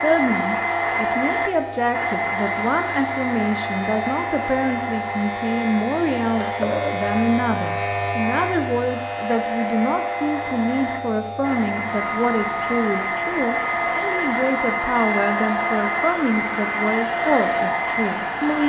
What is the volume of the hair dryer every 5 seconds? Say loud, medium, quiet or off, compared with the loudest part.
loud, medium, loud, loud.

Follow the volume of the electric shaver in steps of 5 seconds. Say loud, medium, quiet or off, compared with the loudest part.
medium, loud, medium, medium.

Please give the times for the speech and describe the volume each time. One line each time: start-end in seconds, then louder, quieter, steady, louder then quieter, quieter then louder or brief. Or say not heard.
0.0-18.6 steady.